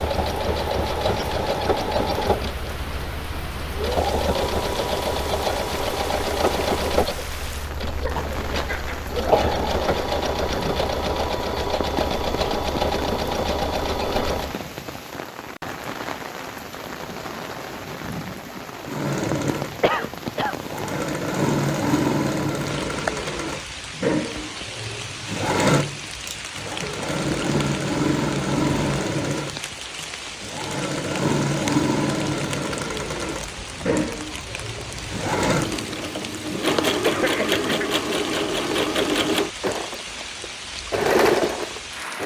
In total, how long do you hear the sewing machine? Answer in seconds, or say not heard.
38 s.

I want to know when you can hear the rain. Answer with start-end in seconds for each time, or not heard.
0.0-42.2.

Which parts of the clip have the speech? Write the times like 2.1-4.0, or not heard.
not heard.